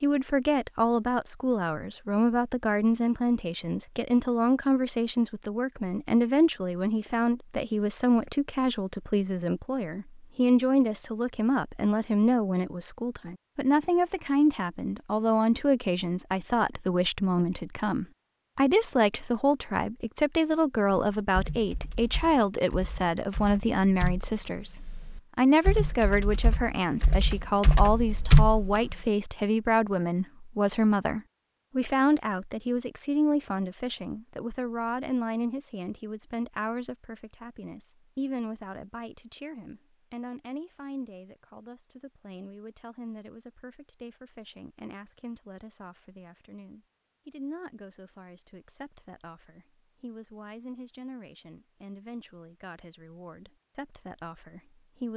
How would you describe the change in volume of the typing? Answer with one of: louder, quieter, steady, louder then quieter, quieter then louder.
louder.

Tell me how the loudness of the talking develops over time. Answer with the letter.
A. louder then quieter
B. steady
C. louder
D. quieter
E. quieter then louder
D.